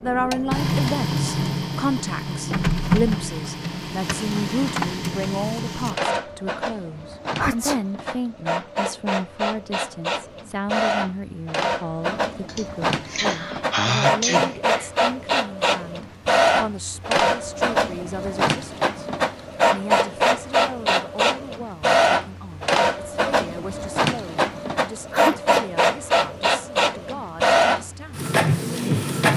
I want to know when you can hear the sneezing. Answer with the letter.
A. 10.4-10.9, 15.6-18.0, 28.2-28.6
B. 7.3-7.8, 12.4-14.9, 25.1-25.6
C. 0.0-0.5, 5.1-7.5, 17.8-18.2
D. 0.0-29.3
B.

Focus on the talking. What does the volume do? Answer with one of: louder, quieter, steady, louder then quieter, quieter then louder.
quieter.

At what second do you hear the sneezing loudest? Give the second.
14 s.